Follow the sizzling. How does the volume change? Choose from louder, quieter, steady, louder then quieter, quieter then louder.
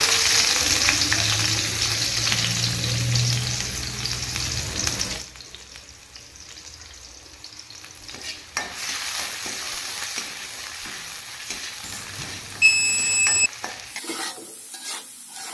quieter.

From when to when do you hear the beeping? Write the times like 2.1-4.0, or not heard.
11.8-13.5.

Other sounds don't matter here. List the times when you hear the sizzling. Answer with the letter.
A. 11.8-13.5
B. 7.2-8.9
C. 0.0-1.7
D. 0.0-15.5
D.